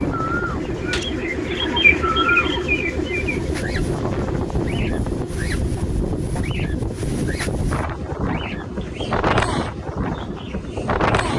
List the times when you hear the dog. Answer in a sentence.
The dog can't be heard in this clip.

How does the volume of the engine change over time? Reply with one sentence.
The volume of the engine goes down.